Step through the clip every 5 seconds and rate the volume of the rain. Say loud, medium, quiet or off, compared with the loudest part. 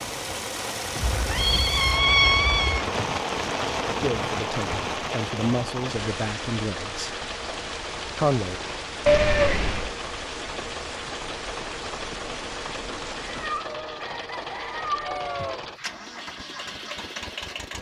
loud, medium, medium, off.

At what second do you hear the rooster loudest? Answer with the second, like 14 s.
15 s.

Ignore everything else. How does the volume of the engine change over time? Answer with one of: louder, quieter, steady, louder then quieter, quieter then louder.
steady.